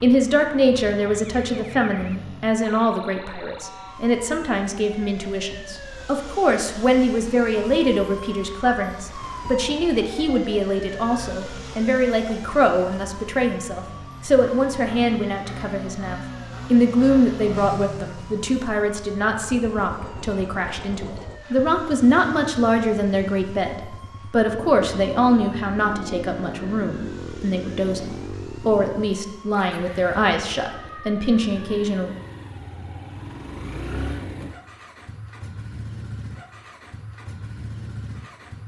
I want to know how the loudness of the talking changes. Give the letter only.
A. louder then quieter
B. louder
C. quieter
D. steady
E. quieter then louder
D.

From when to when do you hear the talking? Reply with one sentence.
The talking can be heard from 0.0 to 32.1 s.